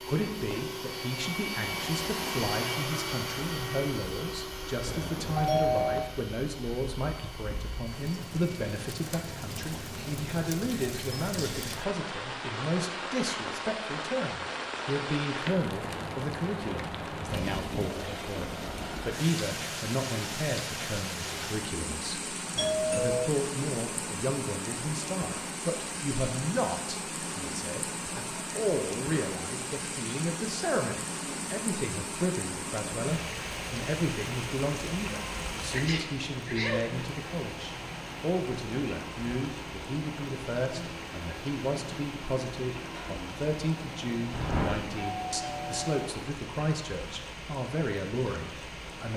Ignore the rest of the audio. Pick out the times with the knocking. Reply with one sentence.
The knocking can't be heard in this clip.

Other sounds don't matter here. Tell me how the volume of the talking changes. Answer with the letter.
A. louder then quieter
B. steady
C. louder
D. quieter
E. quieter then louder
B.